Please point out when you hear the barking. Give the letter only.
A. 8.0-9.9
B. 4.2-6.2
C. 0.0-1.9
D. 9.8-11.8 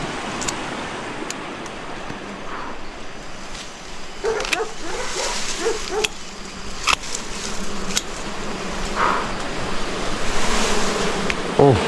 B.